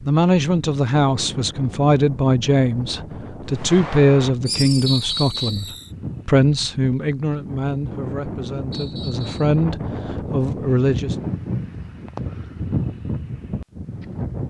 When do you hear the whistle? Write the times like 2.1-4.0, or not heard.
4.8-5.7, 8.7-9.6.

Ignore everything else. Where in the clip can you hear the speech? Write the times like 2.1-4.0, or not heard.
0.0-11.2.